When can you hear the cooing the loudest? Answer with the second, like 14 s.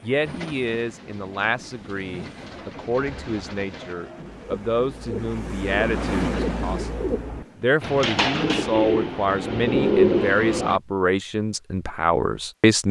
10 s.